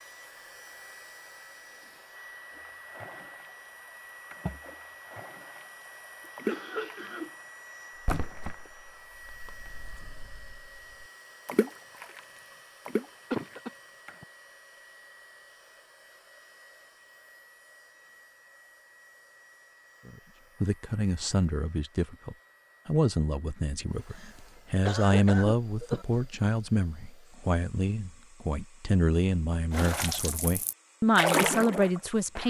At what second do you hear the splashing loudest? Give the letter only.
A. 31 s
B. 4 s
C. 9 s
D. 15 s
A.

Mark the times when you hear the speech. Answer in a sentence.
The speech can be heard from 20.1 to 32.4 s.